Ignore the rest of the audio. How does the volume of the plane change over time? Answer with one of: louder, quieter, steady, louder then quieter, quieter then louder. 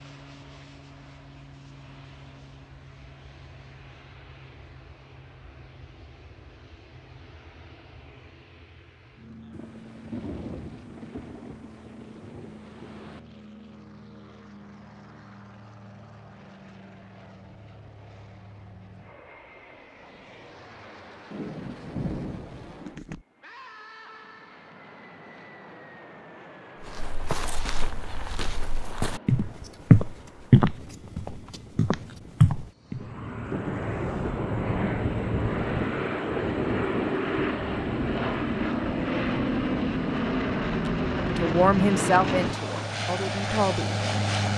louder.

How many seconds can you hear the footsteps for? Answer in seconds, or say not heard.
6 s.